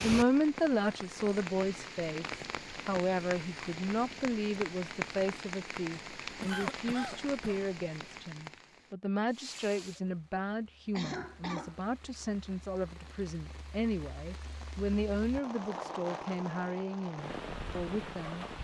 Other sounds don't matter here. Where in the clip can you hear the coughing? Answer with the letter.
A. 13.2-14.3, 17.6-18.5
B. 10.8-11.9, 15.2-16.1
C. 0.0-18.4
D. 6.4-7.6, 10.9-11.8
D.